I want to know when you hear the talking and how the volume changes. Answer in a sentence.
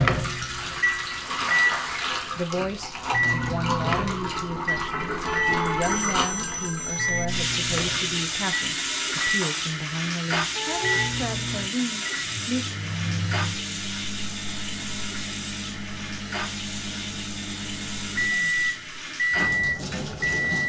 The talking can be heard from 2.4 to 12.7 s, at a steady volume.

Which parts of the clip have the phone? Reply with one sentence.
The phone can be heard from 5.2 to 7.3 s and from 10.6 to 11.2 s.